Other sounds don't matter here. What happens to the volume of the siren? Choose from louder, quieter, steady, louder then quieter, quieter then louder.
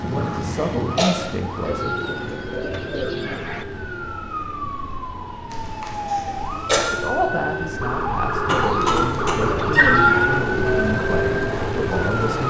louder.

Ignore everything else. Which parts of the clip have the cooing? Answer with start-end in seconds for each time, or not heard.
1.6-3.6, 8.6-10.4.